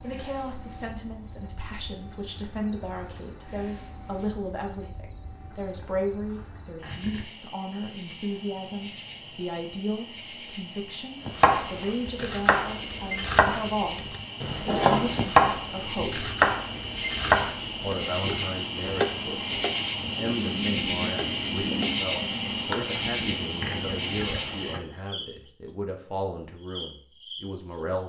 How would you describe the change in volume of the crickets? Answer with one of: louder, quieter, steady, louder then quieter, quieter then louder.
louder.